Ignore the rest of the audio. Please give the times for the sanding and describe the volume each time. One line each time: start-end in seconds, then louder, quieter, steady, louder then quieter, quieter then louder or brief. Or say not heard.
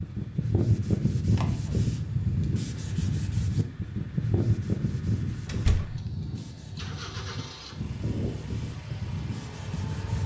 0.0-10.2 quieter.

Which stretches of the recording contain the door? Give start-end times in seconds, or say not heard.
1.3-1.9, 5.5-6.0.